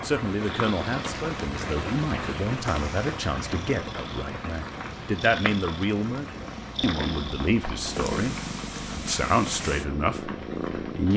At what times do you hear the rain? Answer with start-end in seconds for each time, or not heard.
0.0-11.1.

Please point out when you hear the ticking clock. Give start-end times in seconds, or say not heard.
not heard.